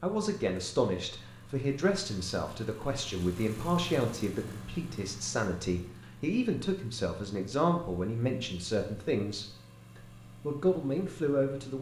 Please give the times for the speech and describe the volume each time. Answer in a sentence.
The speech can be heard from 0.0 to 11.7 s, at a steady volume.